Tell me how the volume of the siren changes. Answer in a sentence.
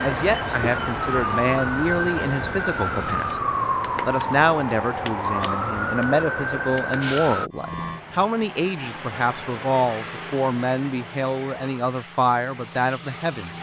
The loudness of the siren stays about the same.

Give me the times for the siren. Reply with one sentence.
The siren can be heard from 0.0 to 7.5 s.